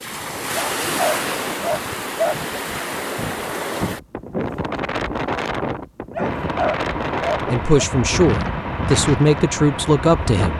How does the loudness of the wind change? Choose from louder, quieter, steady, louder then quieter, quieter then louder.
steady.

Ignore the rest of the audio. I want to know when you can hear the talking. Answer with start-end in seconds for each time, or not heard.
7.0-10.5.